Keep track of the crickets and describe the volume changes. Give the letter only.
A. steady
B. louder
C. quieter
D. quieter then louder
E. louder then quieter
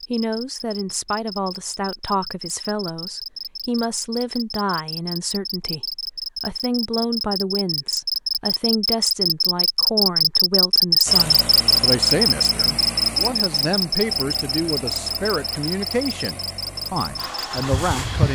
E.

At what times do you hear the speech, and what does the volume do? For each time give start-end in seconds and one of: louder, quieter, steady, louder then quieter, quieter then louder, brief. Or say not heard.
0.1-18.3 steady.